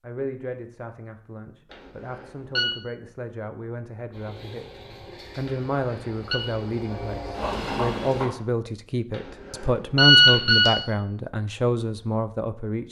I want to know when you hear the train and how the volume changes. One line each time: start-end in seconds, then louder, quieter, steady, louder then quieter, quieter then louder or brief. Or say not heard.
4.1-8.3 louder.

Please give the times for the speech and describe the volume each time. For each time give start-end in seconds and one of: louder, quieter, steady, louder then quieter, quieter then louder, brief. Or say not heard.
0.0-12.8 louder.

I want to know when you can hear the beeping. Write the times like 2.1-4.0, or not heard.
1.7-2.7, 5.5-6.4, 9.6-10.8.